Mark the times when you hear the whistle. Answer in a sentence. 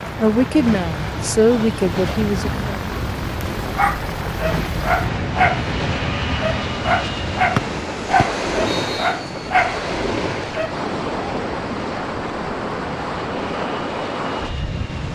The whistle can be heard from 7.5 to 9.2 s.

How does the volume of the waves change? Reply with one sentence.
The loudness of the waves stays about the same.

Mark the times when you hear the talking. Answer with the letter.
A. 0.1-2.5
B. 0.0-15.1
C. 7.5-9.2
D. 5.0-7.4
A.